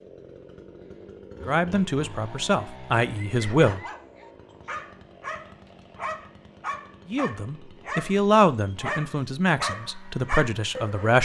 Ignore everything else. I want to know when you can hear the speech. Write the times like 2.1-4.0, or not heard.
1.4-3.8, 7.1-11.2.